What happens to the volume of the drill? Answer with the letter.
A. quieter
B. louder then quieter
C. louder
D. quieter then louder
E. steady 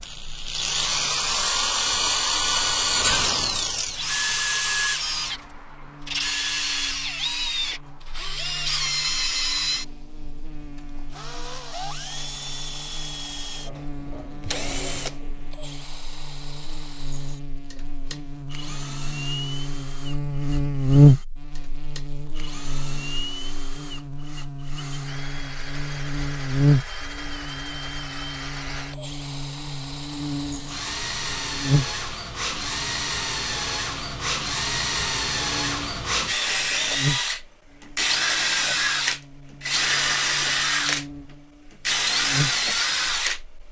D.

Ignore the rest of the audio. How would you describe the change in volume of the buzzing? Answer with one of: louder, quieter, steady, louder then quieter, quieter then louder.
louder then quieter.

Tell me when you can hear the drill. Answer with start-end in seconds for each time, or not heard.
0.0-43.4.